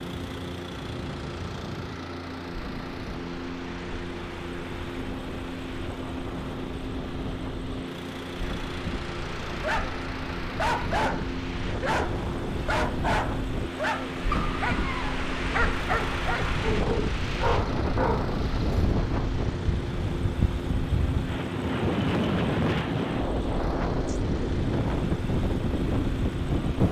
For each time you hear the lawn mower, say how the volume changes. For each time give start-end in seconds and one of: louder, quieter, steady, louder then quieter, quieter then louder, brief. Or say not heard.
0.0-26.8 steady.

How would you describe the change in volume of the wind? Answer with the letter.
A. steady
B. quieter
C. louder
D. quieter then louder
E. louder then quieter
C.